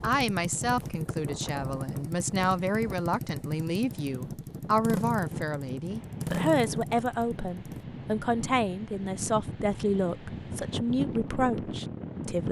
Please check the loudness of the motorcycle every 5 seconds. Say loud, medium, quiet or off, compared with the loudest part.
loud, loud, off.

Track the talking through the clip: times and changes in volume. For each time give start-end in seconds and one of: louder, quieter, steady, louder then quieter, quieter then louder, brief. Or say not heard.
0.0-12.4 steady.